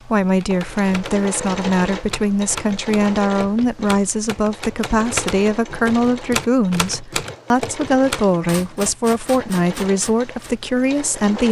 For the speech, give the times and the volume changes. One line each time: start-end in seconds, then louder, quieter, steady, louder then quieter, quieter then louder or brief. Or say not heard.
0.1-11.4 steady.